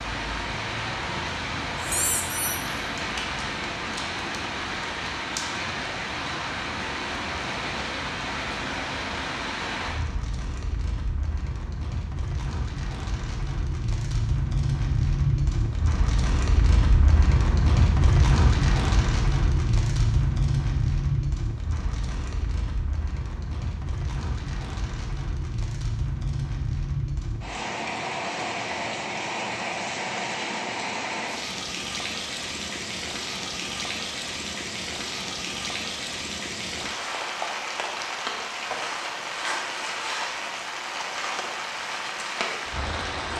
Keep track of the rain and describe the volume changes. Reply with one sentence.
The loudness of the rain stays about the same.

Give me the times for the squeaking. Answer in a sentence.
You can hear the squeaking from 1.8 to 2.6 s.